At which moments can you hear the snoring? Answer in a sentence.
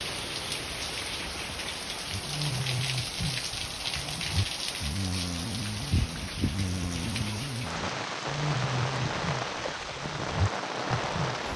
You can hear the snoring from 2.0 to 11.4 s.